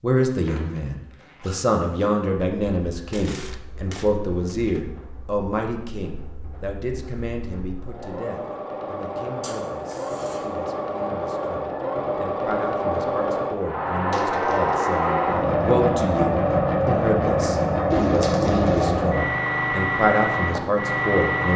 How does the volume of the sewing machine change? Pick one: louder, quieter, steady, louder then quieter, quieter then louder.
louder.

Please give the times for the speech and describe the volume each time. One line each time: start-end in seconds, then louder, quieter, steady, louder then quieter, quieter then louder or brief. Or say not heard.
0.0-21.5 quieter then louder.